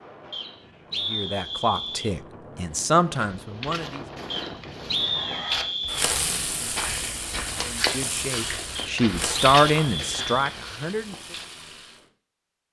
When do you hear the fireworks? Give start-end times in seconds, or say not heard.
5.0-12.1.